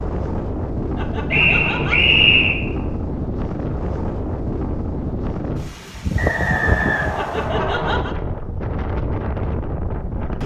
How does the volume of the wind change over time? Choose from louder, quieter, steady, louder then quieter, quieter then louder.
steady.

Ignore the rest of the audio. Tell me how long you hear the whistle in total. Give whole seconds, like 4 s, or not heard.
3 s.